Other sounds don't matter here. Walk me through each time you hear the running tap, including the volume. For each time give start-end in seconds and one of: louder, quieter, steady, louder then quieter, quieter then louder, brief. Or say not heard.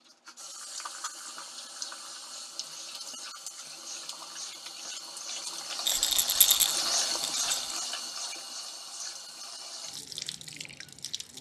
0.0-11.3 louder then quieter.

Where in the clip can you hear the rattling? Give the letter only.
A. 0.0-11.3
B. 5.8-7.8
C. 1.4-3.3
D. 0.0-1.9
B.